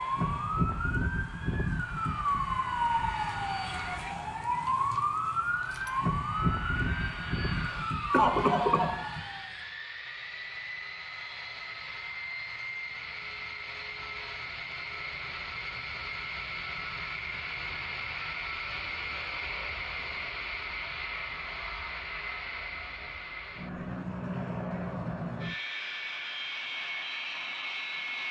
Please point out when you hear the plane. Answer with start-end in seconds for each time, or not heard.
0.0-28.2.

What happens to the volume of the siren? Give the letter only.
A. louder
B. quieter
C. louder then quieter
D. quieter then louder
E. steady
E.